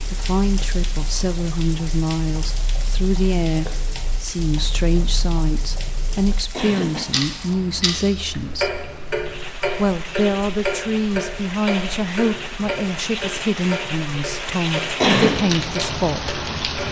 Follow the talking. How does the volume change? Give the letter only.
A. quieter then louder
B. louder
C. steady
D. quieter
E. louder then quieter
C.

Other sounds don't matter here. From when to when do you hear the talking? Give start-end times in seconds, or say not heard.
0.0-8.8, 9.8-16.4.